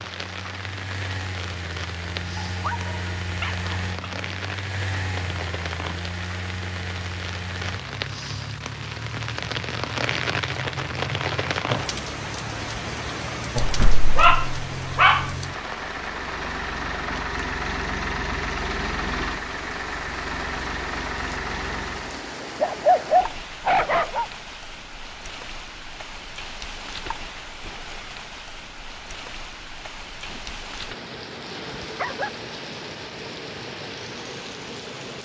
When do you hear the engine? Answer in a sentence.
You can hear the engine from 0.0 to 22.3 s.